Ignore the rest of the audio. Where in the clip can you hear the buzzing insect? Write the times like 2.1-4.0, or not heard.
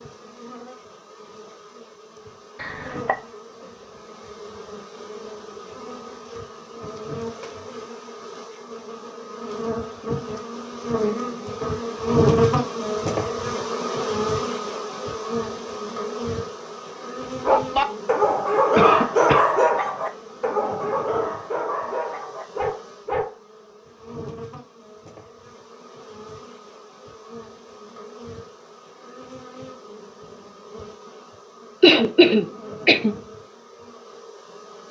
0.0-34.8.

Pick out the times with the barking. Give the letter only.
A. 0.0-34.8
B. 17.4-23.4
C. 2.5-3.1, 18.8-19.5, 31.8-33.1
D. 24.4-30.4
B.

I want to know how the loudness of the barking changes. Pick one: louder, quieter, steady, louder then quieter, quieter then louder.
quieter.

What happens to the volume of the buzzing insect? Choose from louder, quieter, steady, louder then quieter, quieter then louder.
louder then quieter.